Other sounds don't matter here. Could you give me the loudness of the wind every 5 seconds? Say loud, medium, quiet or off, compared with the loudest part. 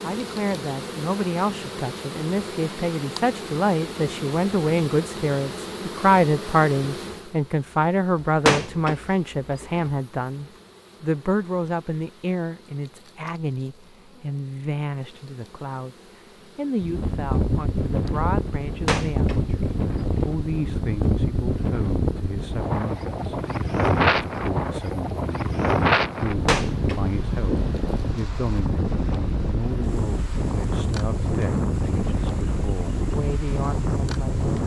off, off, off, loud, loud, loud, loud.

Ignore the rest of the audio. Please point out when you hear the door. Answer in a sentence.
You can hear the door from 8.2 to 9.9 s, from 18.9 to 20.4 s and from 26.2 to 27.1 s.